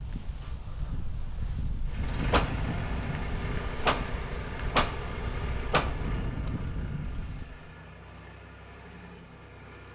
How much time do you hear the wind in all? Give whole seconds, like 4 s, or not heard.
8 s.